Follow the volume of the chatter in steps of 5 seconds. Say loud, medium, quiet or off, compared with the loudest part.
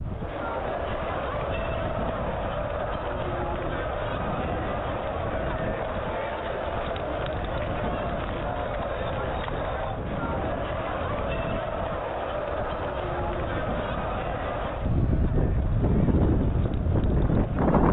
loud, loud, loud, medium.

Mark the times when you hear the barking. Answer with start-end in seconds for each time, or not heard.
not heard.